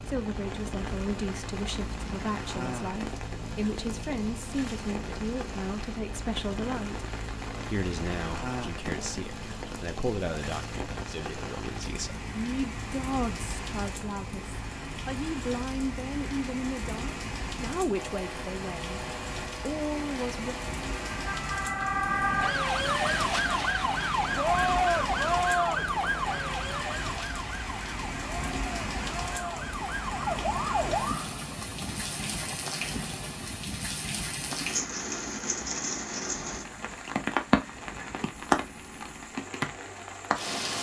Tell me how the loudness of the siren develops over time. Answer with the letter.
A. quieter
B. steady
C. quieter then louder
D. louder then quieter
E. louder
C.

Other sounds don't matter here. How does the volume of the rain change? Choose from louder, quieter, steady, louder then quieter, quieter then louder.
louder.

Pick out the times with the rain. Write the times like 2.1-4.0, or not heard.
0.0-40.7.